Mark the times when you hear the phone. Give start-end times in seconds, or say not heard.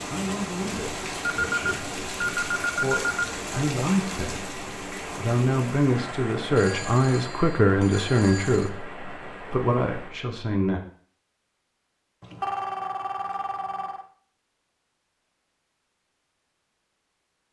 1.4-3.2, 6.5-8.7, 12.2-14.1.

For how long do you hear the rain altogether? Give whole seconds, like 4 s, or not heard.
10 s.